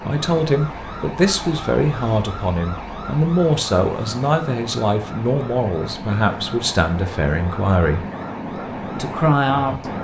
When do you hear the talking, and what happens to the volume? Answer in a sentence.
The talking can be heard from 0.0 to 8.1 s, at a steady volume; and briefly from 8.9 to 9.9 s.